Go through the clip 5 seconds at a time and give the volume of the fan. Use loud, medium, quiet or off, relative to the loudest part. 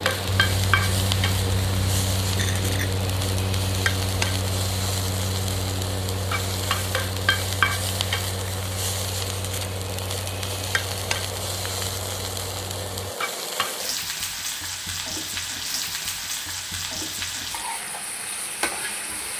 loud, medium, medium, off.